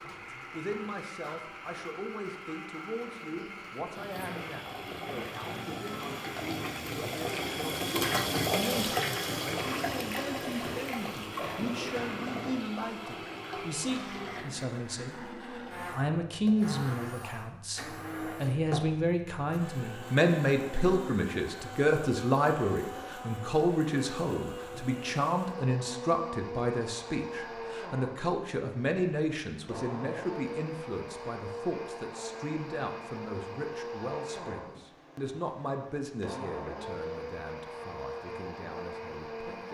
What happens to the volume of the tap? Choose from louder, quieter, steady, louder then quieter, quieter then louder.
louder then quieter.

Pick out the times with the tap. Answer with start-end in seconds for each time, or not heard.
3.9-14.4.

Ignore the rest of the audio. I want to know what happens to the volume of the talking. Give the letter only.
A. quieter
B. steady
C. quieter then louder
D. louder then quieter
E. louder
D.